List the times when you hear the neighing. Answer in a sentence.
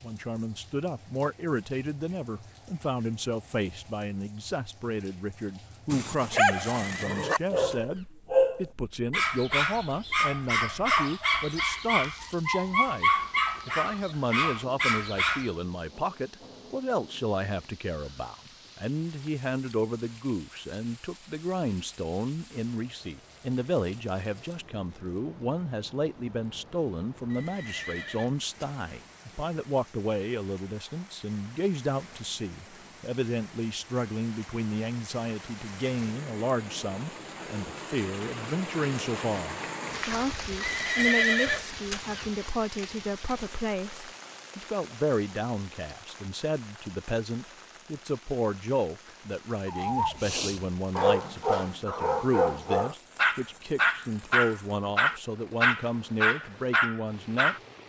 You can hear the neighing from 6.7 to 8.1 s, from 27.3 to 28.7 s and from 40.6 to 42.2 s.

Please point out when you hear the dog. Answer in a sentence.
You can hear the dog from 5.9 to 15.5 s and from 49.6 to 57.6 s.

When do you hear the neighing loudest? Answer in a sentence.
The loudest moment of the neighing is at 41 seconds.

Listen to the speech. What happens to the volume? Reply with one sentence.
The loudness of the speech stays about the same.